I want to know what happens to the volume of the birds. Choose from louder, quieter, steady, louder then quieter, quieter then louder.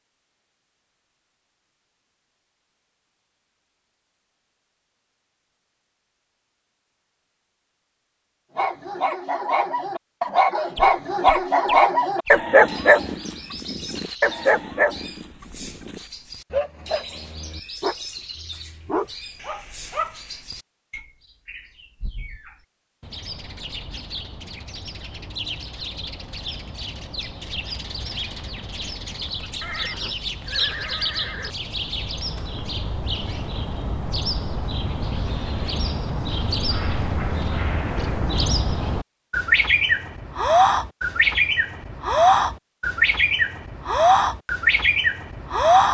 louder.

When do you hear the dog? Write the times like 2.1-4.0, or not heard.
8.6-20.4.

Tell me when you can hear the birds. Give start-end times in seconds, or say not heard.
10.8-45.8.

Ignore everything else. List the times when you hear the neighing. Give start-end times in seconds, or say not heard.
29.6-31.6.